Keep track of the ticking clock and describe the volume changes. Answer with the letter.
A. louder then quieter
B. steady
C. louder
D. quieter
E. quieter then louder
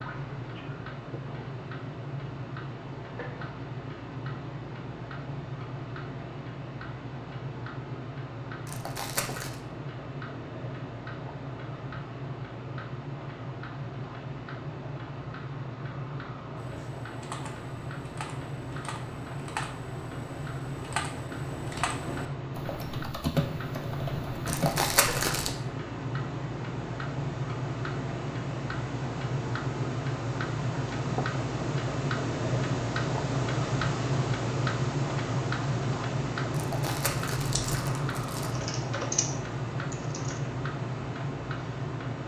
C.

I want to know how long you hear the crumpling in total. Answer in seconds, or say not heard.
4 s.